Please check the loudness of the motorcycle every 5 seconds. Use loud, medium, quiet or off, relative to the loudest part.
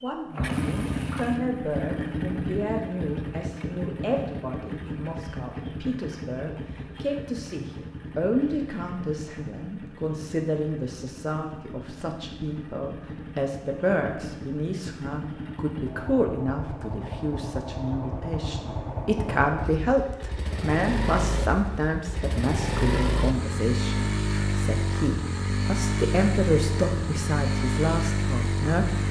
loud, medium, medium, medium, loud, loud.